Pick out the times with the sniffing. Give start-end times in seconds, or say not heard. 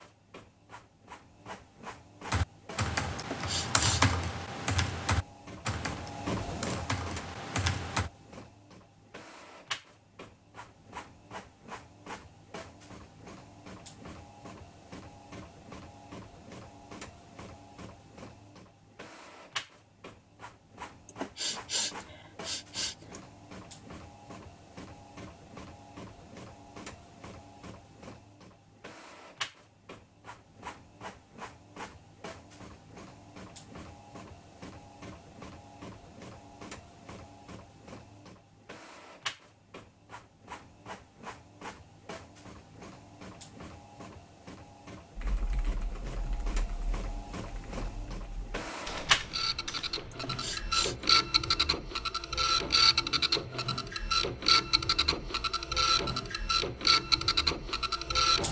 3.1-4.2, 21.1-23.2, 50.1-51.0.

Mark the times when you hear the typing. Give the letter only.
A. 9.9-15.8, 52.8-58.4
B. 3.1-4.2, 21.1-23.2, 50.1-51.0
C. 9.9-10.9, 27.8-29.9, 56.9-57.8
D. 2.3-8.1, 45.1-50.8
D.